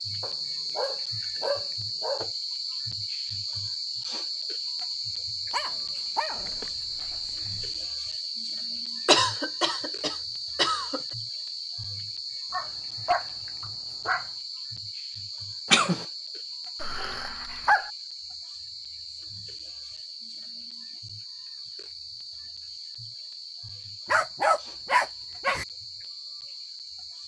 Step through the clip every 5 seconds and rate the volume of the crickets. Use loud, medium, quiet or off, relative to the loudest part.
loud, loud, loud, medium, medium, medium.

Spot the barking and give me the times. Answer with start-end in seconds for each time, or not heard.
0.2-2.2, 5.5-7.7, 12.5-14.3, 16.8-17.9, 24.1-25.6.